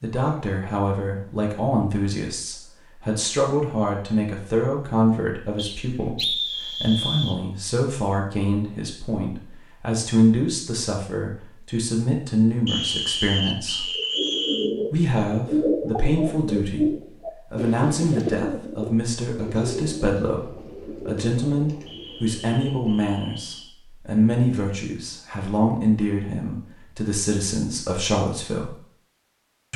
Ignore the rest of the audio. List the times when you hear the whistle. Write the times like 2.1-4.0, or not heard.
5.5-7.4, 12.7-14.7, 21.9-23.7.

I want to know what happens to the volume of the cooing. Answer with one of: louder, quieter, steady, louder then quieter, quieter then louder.
quieter.